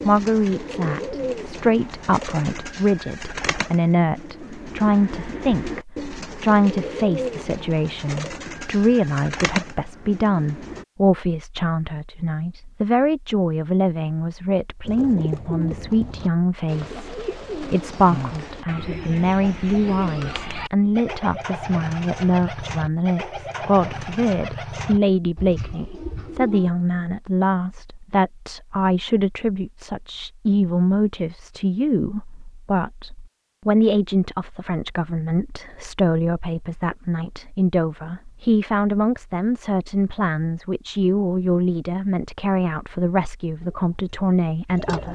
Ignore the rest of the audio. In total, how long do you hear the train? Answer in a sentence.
You can't hear the train here.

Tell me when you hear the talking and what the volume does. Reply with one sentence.
The talking can be heard from 0.0 to 45.1 s, at a steady volume.